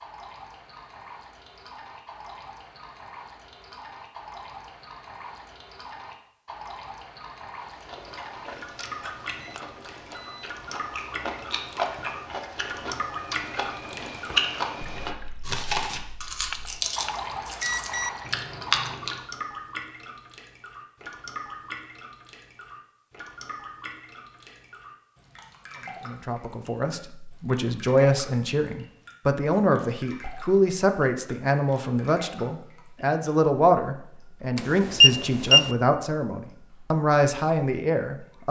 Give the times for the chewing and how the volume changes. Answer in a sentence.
The chewing can be heard from 7.6 to 19.2 s, getting louder.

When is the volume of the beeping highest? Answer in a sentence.
The volume of the beeping peaks at 35 seconds.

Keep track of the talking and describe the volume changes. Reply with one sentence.
The volume of the talking stays about the same.